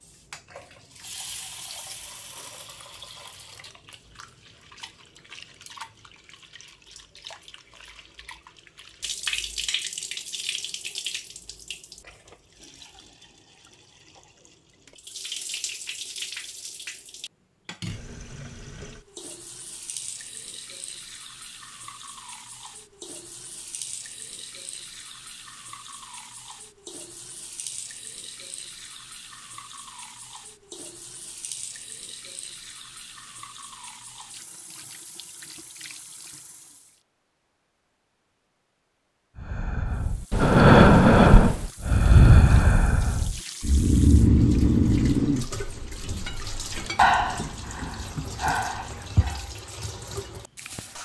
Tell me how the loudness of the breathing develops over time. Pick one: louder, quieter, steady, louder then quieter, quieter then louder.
quieter.